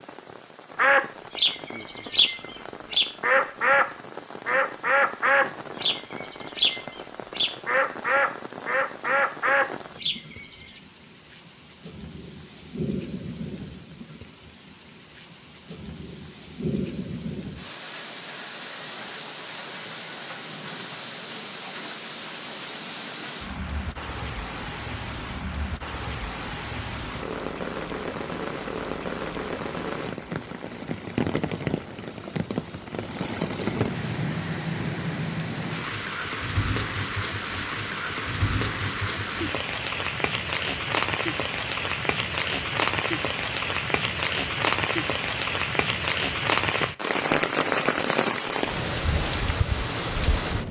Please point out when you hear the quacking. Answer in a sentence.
You can hear the quacking from 0.8 to 3.9 s and from 4.5 to 10.8 s.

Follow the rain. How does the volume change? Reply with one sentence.
The loudness of the rain goes up.